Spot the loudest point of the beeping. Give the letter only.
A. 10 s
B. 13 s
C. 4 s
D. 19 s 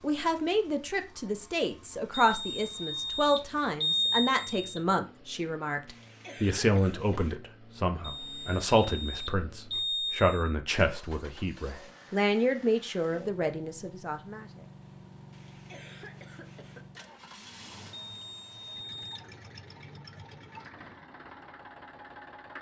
C.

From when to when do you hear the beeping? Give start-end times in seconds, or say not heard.
2.3-4.8, 8.0-10.5, 17.9-19.2.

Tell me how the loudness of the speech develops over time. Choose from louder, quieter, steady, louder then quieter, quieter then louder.
steady.